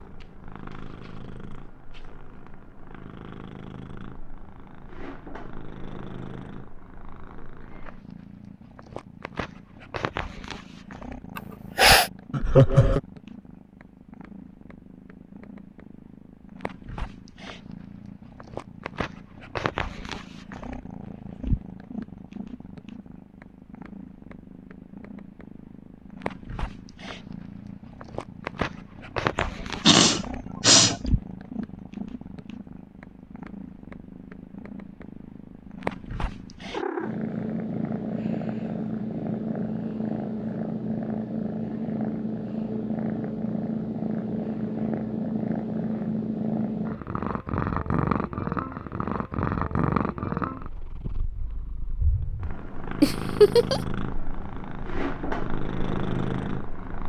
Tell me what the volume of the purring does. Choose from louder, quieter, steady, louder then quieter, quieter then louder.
louder.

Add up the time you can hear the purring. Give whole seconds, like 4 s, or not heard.
57 s.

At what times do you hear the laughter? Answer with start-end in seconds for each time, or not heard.
12.3-13.0, 53.0-53.8.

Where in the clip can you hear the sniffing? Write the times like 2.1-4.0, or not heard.
11.3-12.1, 29.4-31.0.